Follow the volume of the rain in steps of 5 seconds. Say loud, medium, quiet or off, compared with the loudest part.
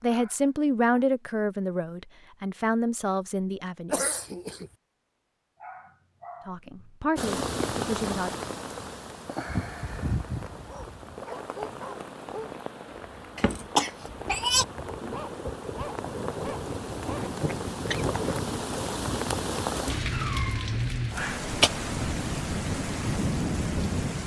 off, loud, medium, loud, loud.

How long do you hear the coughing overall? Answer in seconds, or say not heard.
3 s.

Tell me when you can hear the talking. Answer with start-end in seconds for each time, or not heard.
0.0-4.0, 6.5-8.3.